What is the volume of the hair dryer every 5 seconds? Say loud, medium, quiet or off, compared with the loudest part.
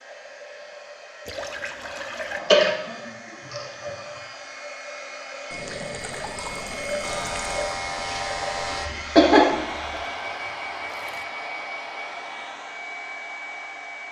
medium, loud, loud.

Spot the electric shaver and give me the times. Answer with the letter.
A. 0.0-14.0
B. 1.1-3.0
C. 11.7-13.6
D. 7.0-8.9
D.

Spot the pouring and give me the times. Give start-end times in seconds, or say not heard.
1.2-2.4, 5.5-7.8, 9.7-11.2.